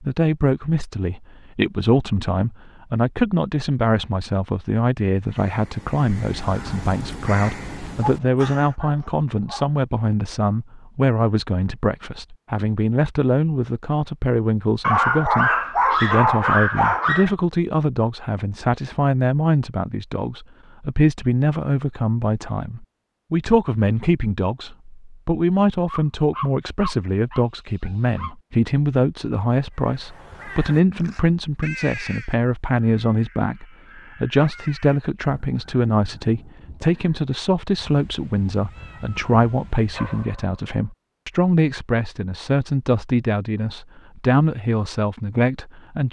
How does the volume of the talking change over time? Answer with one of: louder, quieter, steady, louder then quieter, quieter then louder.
steady.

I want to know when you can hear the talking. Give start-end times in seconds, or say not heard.
0.0-46.0.